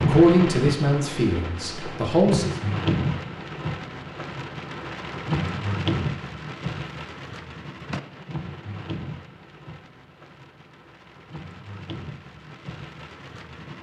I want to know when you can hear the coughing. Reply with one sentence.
You can't hear the coughing here.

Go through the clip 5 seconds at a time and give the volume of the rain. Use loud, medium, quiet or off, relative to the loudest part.
loud, loud, quiet.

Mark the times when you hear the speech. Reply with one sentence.
You can hear the speech from 0.1 to 2.5 s.